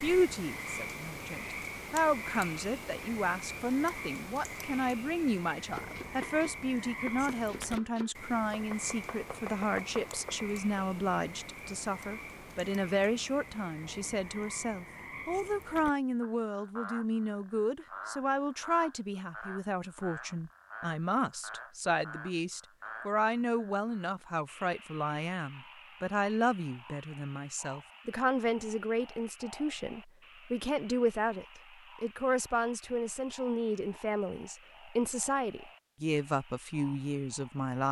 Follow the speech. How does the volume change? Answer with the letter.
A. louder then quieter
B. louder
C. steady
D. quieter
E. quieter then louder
C.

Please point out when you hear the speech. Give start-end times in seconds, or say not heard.
0.0-37.8.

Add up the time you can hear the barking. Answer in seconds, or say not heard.
not heard.